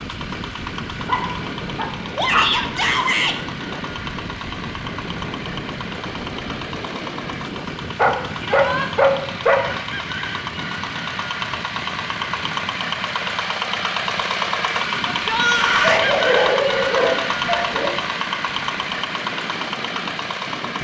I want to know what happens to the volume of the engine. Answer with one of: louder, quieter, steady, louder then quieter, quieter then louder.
louder.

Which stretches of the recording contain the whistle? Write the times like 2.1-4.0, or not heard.
not heard.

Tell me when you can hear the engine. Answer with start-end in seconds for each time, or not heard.
0.0-20.8.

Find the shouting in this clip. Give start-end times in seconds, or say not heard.
2.1-3.4, 8.4-8.9, 15.1-16.1.